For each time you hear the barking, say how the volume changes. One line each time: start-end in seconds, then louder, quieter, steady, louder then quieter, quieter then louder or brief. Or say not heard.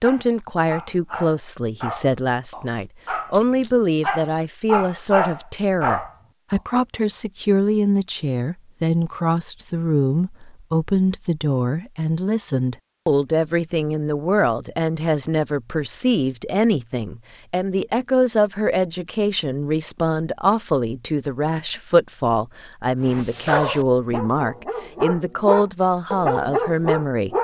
0.0-6.6 louder
23.1-27.3 quieter then louder.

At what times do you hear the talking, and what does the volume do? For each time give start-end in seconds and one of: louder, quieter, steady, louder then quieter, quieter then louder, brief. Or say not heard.
0.0-27.3 steady.